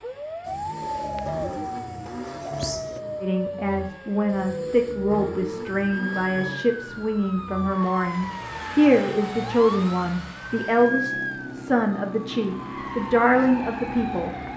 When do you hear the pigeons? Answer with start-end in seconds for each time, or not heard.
0.5-3.0.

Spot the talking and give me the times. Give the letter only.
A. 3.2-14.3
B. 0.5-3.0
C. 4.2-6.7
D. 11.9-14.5
A.